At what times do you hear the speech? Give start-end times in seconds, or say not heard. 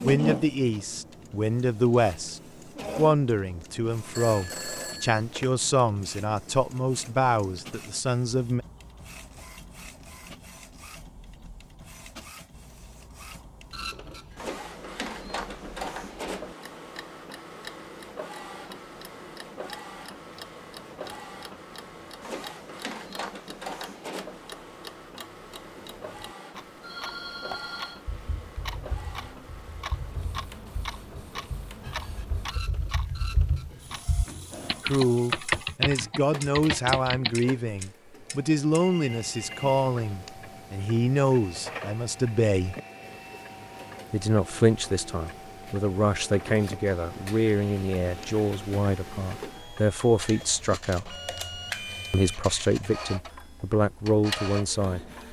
0.0-8.7, 34.8-42.8, 44.1-51.1, 52.1-55.0.